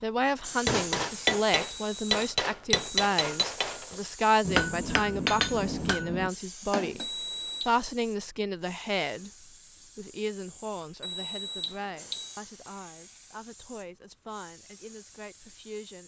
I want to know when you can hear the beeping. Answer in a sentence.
The beeping can be heard from 1.6 to 3.0 s, from 7.0 to 7.7 s and from 11.0 to 12.3 s.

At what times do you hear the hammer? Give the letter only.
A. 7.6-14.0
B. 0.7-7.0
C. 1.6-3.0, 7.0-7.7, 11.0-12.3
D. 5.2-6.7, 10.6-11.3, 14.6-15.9
B.